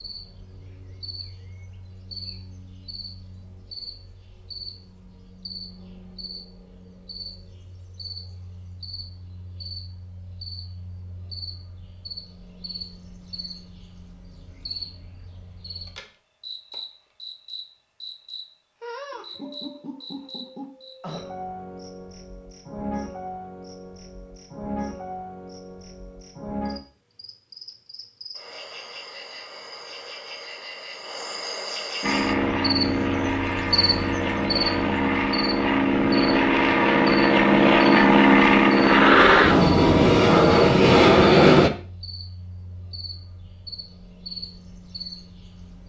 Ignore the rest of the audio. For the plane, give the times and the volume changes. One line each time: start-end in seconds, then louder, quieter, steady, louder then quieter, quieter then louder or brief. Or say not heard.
32.0-41.7 louder.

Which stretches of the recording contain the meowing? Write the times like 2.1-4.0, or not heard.
not heard.